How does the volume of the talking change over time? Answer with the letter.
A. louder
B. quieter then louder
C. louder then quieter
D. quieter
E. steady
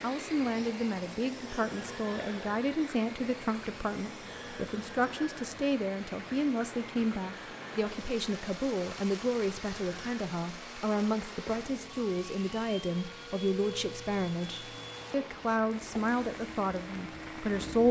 E.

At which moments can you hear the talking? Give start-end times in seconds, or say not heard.
0.0-17.8.